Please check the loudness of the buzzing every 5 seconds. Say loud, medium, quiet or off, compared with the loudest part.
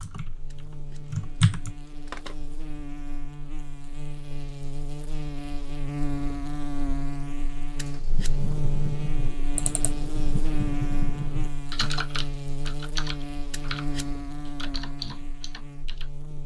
medium, loud, loud, medium.